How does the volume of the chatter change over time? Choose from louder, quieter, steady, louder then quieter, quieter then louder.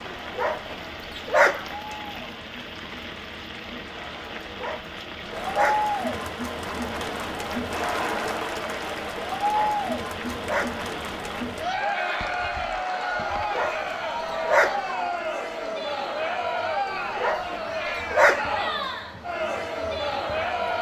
louder.